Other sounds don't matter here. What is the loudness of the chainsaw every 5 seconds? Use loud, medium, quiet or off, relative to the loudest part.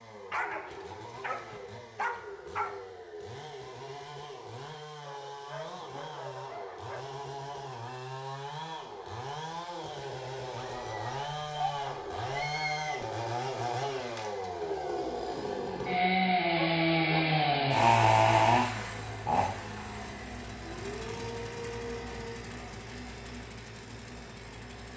quiet, quiet, medium, loud, quiet.